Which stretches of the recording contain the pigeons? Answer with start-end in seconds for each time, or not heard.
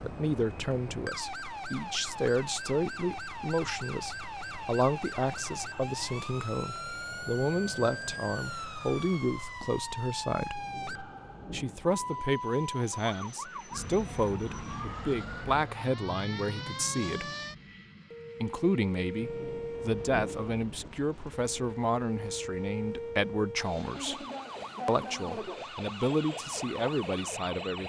not heard.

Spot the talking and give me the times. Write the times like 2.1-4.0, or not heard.
0.0-10.6, 11.5-17.3, 18.4-24.2, 24.9-27.8.